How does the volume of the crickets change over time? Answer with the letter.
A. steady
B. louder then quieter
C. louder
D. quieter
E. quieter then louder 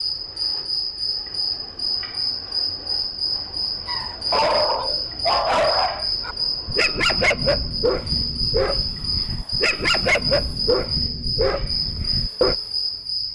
A.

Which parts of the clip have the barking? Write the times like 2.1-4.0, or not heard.
3.9-12.6.